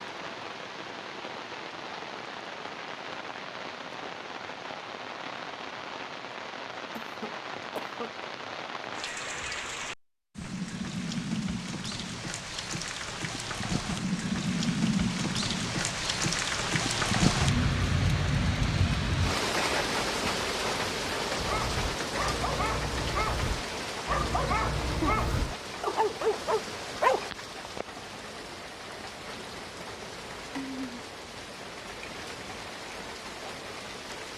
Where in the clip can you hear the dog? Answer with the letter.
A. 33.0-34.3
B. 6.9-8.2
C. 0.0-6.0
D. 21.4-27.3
D.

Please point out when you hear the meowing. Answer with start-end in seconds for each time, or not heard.
not heard.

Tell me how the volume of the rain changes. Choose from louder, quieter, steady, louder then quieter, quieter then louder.
louder then quieter.